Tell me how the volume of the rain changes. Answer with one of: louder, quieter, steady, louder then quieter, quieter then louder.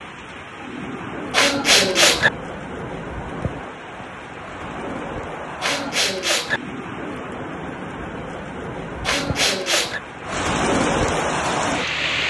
louder.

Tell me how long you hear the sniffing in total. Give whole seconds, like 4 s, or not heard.
3 s.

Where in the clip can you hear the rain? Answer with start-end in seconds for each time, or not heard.
0.0-12.2.